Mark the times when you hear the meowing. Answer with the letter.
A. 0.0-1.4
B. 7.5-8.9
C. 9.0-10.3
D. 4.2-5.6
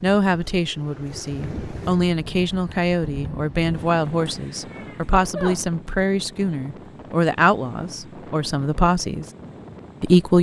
D.